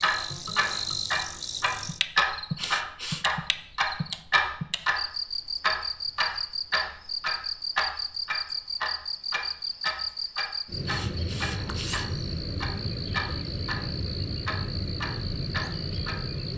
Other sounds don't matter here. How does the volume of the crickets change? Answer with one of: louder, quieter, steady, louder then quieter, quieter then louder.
steady.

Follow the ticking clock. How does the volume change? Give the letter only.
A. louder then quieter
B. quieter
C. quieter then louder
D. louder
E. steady
B.